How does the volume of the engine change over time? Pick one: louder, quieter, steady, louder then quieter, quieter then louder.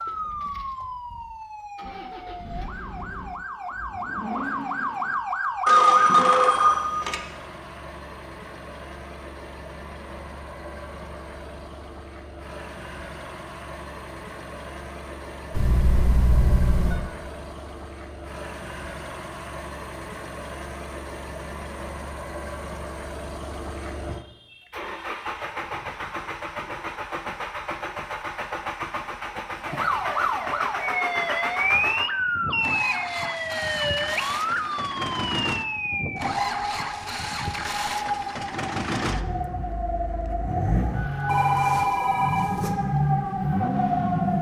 louder.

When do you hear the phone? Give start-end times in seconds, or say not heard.
5.7-7.2, 15.5-17.0, 41.2-42.8.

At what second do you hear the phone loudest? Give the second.
6 s.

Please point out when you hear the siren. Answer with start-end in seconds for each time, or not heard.
0.0-6.9, 29.6-44.3.